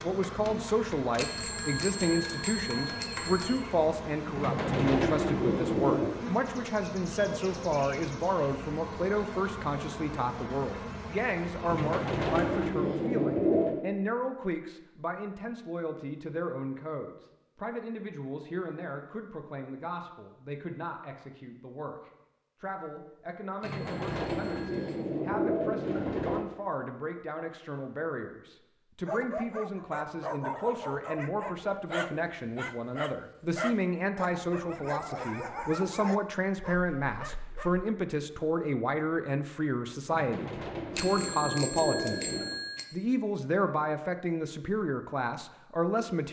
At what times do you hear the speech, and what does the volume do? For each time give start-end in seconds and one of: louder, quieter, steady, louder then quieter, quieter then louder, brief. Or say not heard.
0.0-46.2 quieter then louder.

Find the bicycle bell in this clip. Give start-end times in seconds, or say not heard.
1.1-3.6, 23.6-25.0, 41.0-43.0.